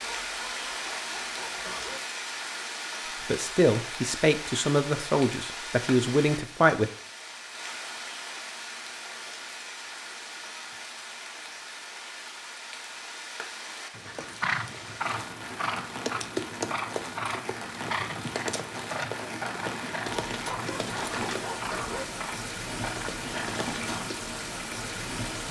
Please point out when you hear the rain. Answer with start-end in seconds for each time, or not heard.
0.0-25.4.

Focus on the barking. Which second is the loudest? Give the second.
22 s.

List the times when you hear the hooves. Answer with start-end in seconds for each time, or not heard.
13.9-24.2.